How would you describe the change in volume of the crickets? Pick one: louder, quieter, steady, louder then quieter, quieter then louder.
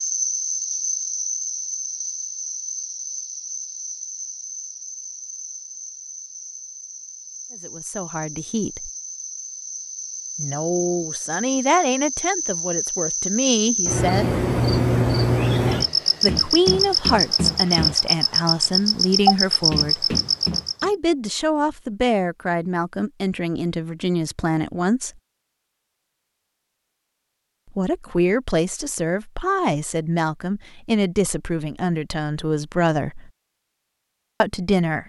quieter then louder.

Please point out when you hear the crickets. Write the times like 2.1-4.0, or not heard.
0.0-20.9.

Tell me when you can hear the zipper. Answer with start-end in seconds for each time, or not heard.
not heard.